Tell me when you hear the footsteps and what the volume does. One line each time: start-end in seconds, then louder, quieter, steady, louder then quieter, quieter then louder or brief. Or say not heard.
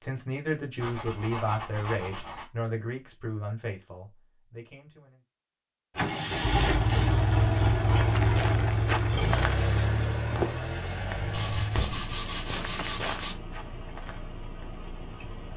8.0-14.7 quieter.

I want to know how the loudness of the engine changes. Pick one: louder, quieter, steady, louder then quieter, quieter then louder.
quieter.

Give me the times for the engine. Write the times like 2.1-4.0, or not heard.
6.0-15.5.